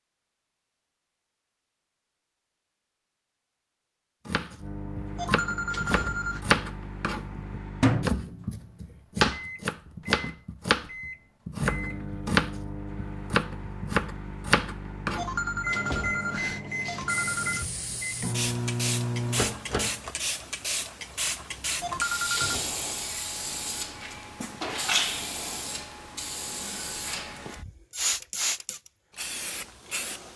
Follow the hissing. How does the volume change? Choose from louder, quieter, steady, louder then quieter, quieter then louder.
steady.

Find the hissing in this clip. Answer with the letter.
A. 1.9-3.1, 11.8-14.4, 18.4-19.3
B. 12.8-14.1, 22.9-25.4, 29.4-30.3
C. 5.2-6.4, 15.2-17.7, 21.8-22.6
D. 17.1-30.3
D.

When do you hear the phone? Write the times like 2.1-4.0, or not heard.
5.2-6.4, 15.2-17.7, 21.8-22.6.